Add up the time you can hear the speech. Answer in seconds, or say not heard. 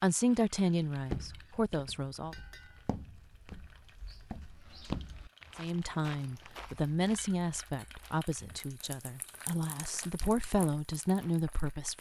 9 s.